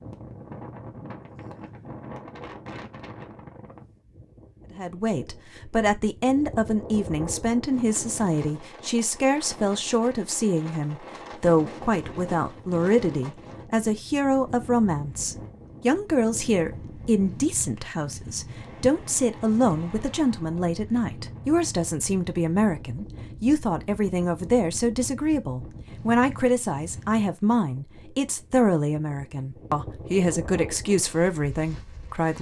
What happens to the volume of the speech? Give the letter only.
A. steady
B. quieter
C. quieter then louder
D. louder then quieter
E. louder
A.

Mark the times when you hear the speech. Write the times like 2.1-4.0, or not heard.
4.8-32.3.